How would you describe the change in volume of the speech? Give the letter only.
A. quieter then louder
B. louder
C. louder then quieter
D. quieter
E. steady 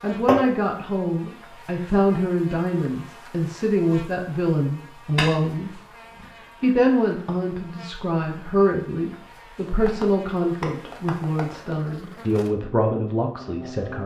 E.